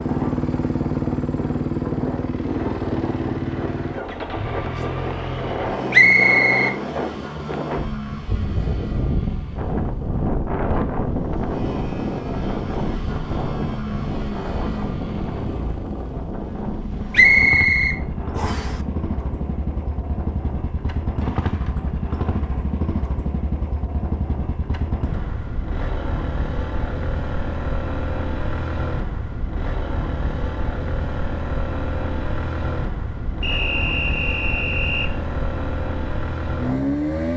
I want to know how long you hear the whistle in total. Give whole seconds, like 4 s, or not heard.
4 s.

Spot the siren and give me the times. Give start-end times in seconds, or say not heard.
not heard.